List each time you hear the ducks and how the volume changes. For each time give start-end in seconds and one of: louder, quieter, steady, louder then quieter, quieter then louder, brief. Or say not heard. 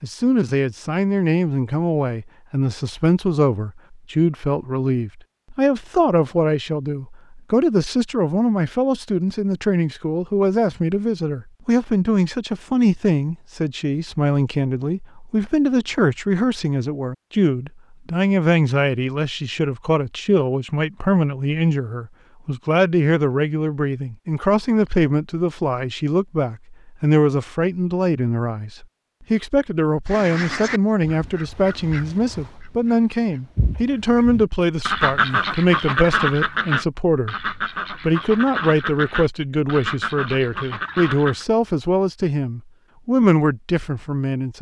30.1-41.5 louder then quieter.